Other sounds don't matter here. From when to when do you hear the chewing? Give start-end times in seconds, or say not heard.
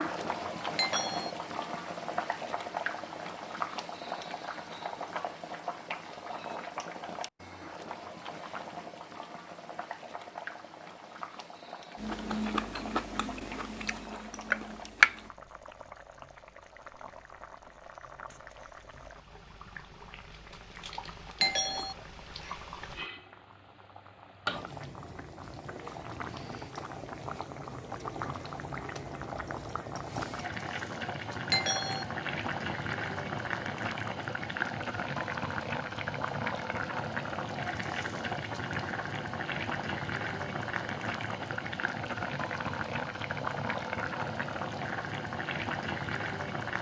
11.9-15.3.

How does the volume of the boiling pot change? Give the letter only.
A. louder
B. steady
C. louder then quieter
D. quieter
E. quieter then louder
E.